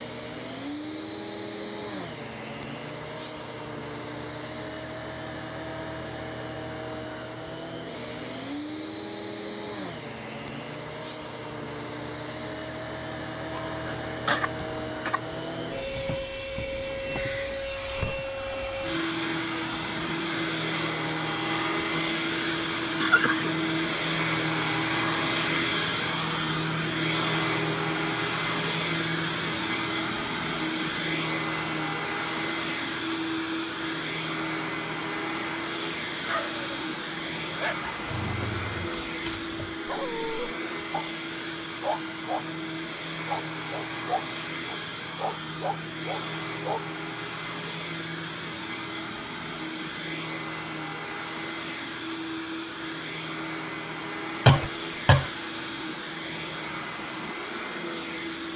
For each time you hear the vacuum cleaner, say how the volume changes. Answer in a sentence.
The vacuum cleaner can be heard from 0.0 to 58.5 s, getting louder then quieter.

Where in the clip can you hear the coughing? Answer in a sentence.
You can hear the coughing from 13.6 to 15.2 s, from 23.0 to 23.5 s and from 54.5 to 55.3 s.